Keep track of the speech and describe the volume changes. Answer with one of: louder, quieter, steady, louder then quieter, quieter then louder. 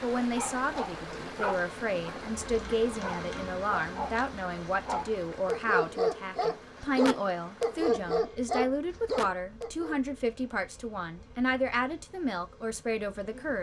steady.